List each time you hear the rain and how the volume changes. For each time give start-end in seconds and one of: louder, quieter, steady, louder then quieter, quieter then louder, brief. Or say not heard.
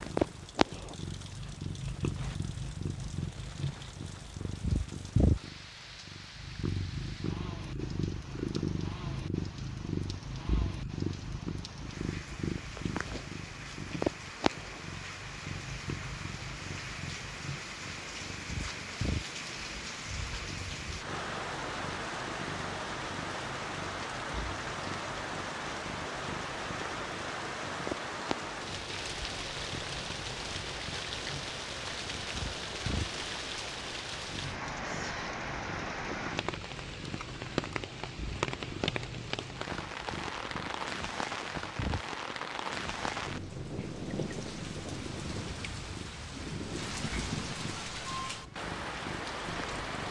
0.0-50.0 louder.